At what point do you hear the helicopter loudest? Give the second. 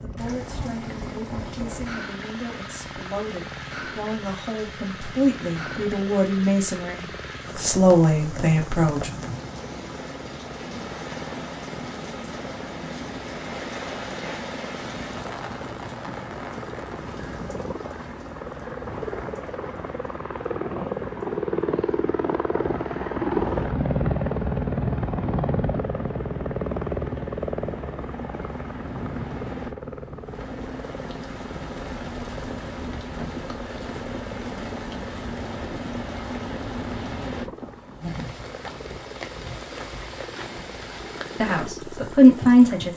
24 s.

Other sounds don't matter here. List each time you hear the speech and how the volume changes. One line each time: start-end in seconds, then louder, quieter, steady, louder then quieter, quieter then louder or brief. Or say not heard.
0.0-9.1 louder
41.4-42.9 brief.